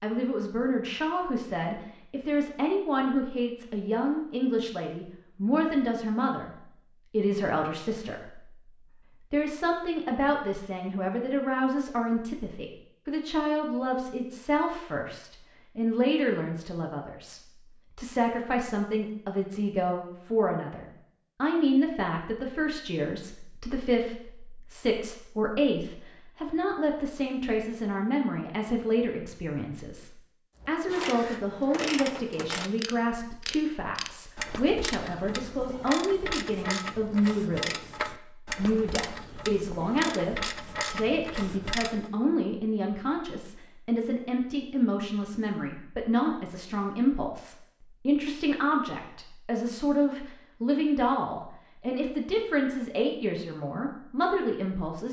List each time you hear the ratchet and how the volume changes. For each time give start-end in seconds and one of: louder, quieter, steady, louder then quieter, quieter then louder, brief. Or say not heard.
30.5-42.1 steady.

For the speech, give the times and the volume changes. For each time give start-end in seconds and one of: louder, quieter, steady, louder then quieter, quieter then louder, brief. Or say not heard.
0.0-55.0 steady.